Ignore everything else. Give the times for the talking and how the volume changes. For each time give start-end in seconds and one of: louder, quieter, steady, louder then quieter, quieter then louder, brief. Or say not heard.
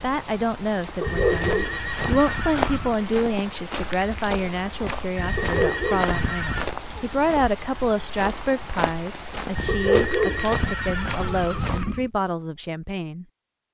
0.0-13.2 steady.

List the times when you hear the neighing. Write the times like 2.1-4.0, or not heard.
1.0-3.0, 5.2-6.7, 9.6-12.1.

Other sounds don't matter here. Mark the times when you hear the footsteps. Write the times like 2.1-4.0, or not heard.
0.8-12.1.